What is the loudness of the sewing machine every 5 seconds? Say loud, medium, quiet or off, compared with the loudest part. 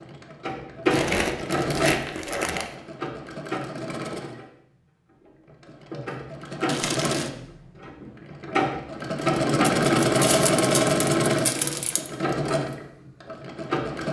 medium, loud, loud.